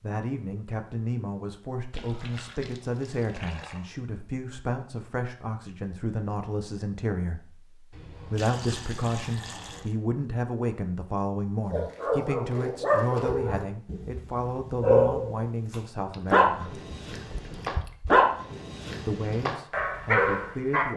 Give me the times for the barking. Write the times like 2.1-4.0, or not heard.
11.7-20.9.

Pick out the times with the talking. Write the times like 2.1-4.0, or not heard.
0.0-16.8, 19.1-20.9.